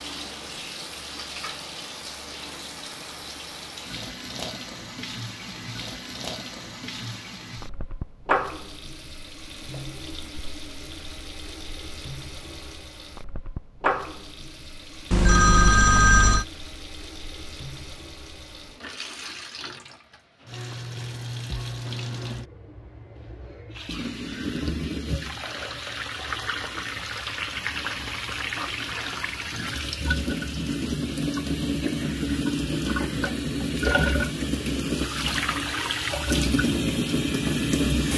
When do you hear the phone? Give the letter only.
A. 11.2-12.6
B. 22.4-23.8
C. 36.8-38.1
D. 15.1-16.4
D.